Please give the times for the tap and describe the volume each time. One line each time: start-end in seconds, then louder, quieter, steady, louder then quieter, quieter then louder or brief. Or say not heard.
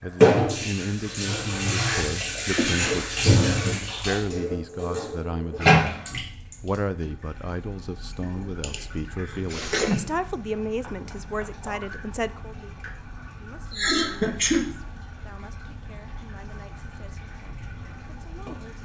0.0-18.8 quieter.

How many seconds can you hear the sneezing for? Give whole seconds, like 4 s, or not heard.
3 s.